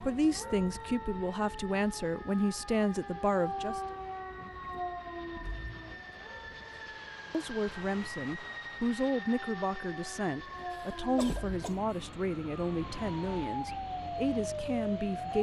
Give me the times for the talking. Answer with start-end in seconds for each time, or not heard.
0.0-3.8, 7.3-15.3.